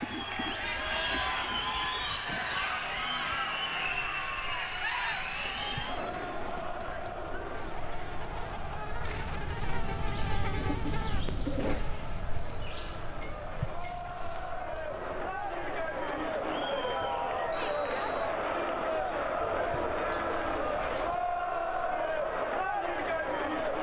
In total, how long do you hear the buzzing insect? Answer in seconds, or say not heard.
24 s.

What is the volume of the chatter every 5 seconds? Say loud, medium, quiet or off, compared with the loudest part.
loud, medium, medium, loud, loud.